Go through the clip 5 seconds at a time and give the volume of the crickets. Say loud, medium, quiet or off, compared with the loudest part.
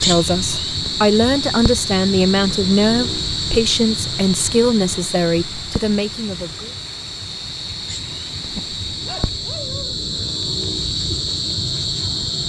loud, medium, loud.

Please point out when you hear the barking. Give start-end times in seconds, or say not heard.
8.5-10.1.